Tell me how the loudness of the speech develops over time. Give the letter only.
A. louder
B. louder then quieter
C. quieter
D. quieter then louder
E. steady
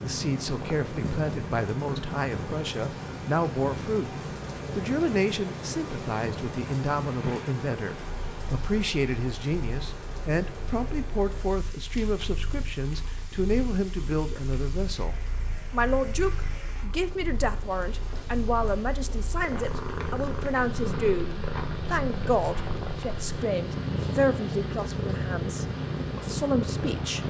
E.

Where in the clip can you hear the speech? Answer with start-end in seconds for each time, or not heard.
0.0-4.2, 4.8-27.2.